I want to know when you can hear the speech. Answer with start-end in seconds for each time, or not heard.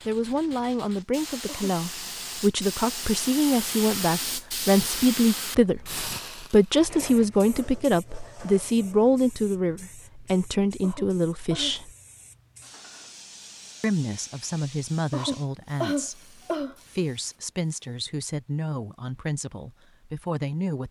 0.1-11.9, 13.8-20.8.